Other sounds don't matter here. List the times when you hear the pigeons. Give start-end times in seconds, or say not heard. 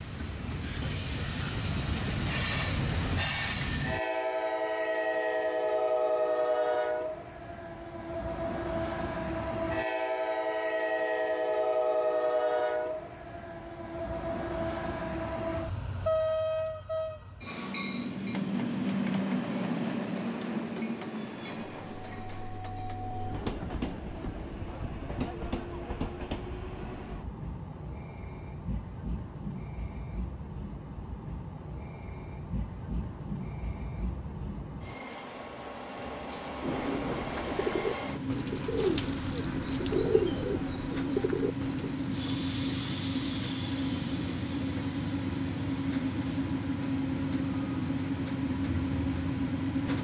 36.8-42.0.